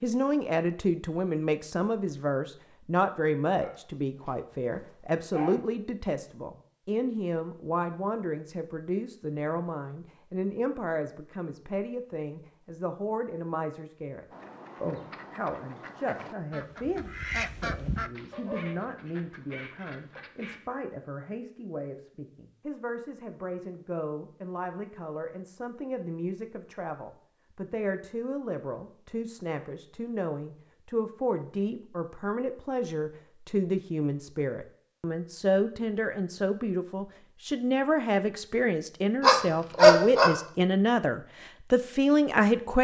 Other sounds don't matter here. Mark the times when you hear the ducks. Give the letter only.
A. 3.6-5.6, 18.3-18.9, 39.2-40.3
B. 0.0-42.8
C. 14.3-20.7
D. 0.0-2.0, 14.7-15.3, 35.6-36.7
C.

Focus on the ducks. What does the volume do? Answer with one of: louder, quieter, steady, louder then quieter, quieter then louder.
louder then quieter.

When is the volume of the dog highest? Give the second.
40 s.